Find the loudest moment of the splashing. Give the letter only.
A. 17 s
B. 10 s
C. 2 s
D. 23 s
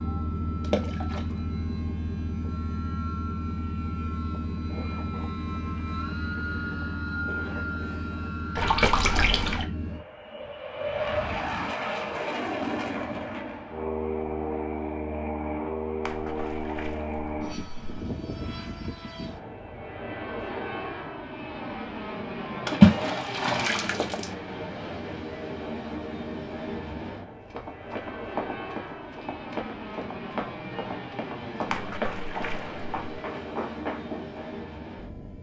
D.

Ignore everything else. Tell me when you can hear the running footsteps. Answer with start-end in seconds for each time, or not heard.
27.3-34.4.